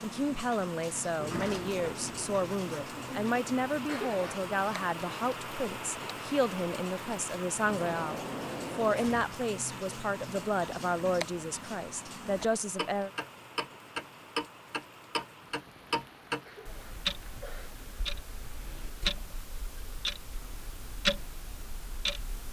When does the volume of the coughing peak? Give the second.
4 s.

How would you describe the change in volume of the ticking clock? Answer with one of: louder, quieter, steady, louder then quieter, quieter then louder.
louder.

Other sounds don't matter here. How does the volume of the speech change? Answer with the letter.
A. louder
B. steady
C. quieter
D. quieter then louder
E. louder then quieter
B.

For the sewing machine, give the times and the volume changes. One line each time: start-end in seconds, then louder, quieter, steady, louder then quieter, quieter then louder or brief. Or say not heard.
not heard.